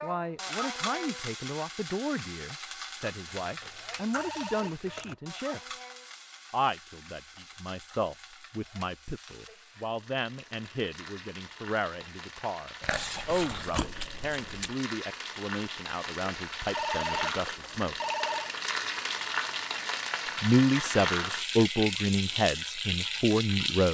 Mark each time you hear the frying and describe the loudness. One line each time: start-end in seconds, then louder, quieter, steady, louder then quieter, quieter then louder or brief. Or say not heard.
0.0-23.8 quieter then louder.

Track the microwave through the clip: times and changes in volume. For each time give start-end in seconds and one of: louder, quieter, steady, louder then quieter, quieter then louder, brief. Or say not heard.
not heard.